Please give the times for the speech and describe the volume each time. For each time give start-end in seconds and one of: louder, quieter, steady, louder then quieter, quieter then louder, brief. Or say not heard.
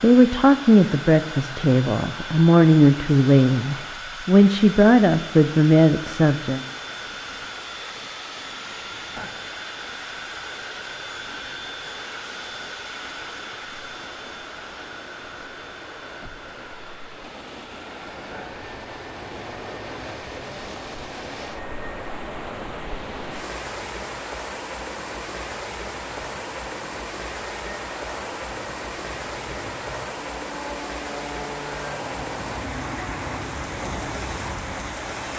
0.0-6.7 steady.